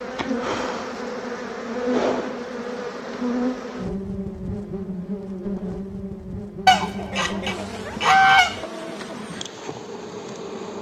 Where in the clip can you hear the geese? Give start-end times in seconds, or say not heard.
6.7-8.6.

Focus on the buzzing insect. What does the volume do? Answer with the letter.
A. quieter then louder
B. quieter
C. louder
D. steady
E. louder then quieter
B.